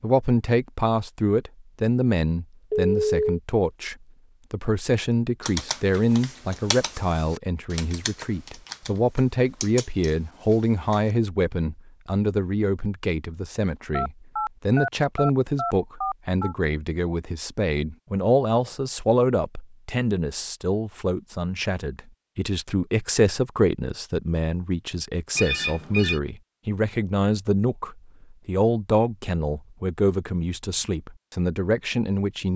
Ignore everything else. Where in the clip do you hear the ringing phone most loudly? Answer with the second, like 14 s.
3 s.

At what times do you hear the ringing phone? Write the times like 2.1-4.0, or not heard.
2.7-3.4, 13.9-16.6, 25.4-26.2.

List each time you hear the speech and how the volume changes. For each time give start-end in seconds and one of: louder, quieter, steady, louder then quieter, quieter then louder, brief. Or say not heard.
0.0-32.5 steady.